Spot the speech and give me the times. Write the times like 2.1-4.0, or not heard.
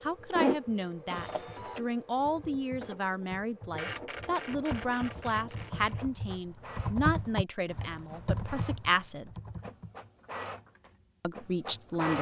0.0-9.3, 11.2-12.1.